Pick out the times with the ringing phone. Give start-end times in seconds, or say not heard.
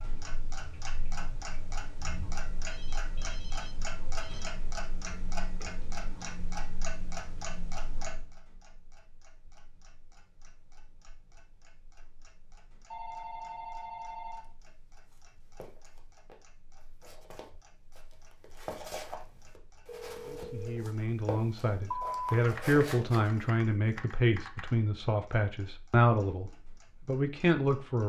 2.6-4.5, 12.9-14.6, 19.9-20.9.